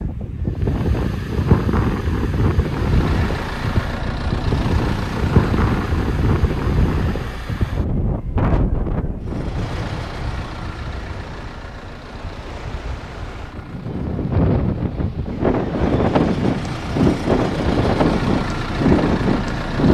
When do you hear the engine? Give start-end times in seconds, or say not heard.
2.7-7.7, 9.2-19.8.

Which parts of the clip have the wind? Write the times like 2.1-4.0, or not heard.
0.0-19.8.